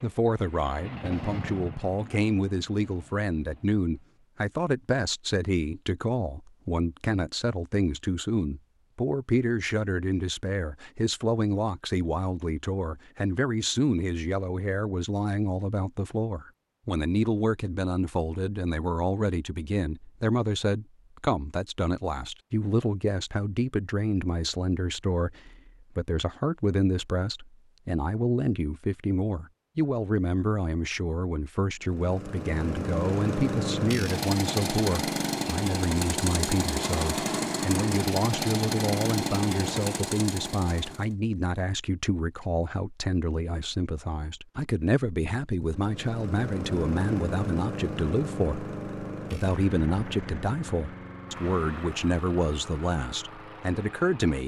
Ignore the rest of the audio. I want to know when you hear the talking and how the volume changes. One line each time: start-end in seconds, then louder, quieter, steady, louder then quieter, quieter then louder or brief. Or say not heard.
0.0-54.4 steady.